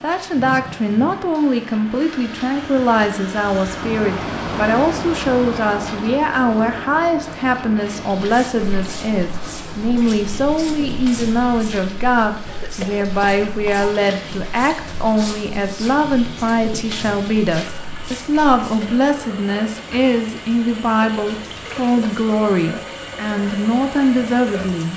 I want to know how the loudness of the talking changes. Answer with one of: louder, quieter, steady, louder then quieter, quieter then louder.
steady.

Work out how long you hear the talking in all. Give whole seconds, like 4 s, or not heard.
25 s.